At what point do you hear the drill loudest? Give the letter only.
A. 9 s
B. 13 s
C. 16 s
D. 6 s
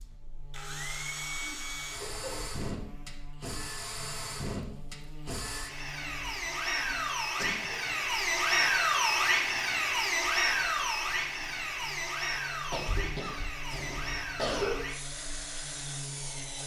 A.